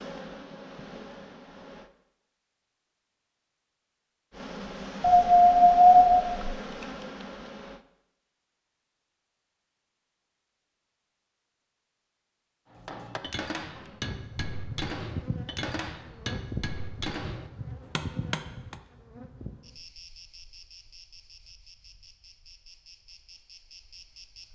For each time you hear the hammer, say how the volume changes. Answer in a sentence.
You can hear the hammer from 12.7 to 18.8 s, at a steady volume.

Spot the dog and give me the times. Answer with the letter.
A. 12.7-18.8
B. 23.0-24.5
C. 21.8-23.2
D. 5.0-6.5
D.